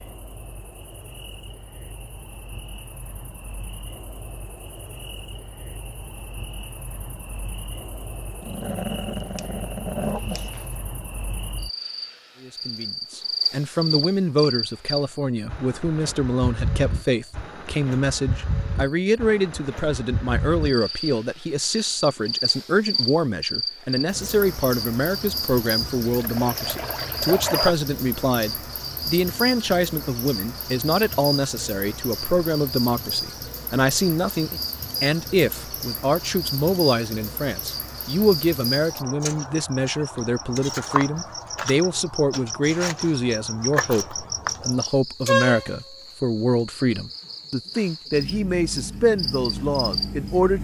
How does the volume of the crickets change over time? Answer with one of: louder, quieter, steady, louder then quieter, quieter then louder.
louder.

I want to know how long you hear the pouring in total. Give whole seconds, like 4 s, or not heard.
2 s.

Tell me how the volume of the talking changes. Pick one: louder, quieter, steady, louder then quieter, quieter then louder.
steady.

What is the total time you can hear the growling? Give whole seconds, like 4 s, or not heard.
2 s.